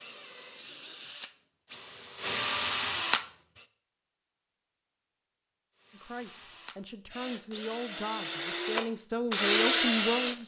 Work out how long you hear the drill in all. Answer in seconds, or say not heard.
8 s.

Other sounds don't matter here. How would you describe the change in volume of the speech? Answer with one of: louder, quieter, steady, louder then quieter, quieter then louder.
louder.